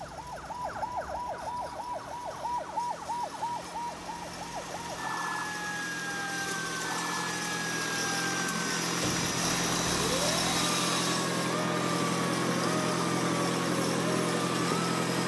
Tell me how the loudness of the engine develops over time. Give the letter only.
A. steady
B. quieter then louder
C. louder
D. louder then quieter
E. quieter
C.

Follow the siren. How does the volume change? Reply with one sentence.
The volume of the siren stays about the same.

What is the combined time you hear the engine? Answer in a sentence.
The engine can be heard for 15 seconds in total.